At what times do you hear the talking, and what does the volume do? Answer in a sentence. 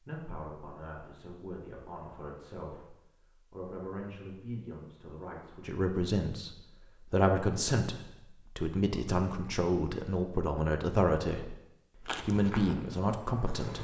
The talking can be heard from 0.0 to 13.7 s, getting louder.